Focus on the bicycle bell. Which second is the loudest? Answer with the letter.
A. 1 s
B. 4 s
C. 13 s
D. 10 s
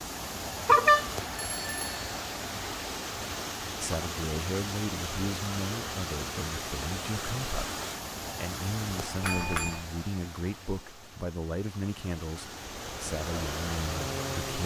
A.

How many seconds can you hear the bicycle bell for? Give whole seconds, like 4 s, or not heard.
2 s.